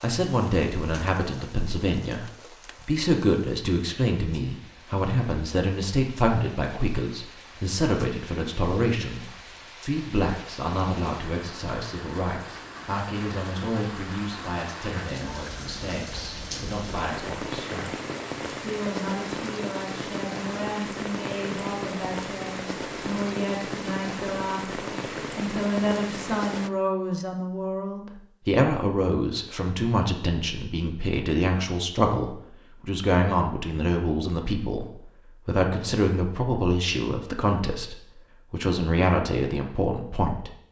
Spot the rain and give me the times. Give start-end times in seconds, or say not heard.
0.0-26.7.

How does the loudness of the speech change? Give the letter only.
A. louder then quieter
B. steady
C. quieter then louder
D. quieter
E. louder
C.